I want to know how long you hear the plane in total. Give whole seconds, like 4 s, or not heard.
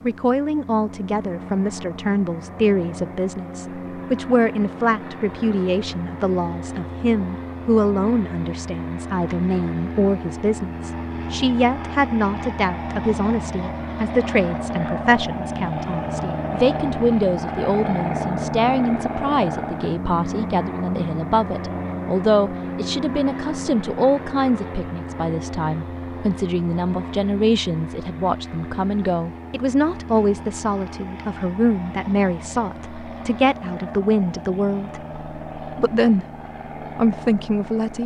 38 s.